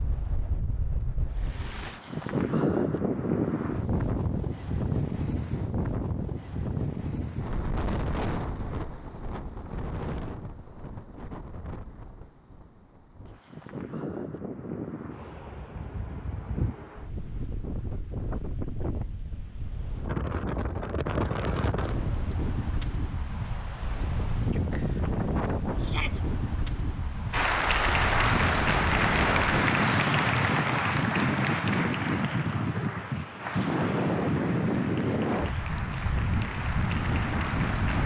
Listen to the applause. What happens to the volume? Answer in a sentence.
The loudness of the applause goes down.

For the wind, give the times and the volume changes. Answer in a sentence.
The wind can be heard from 0.0 to 38.0 s, getting quieter then louder.